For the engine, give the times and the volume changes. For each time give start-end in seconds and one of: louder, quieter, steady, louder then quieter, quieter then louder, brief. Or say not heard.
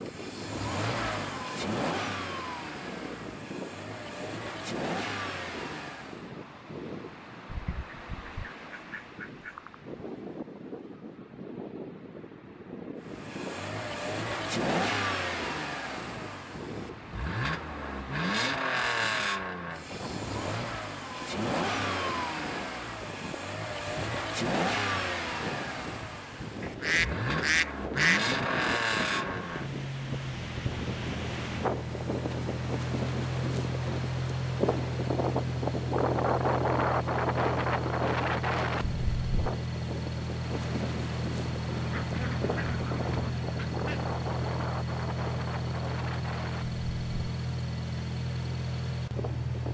0.0-6.3 quieter then louder
13.0-49.6 steady.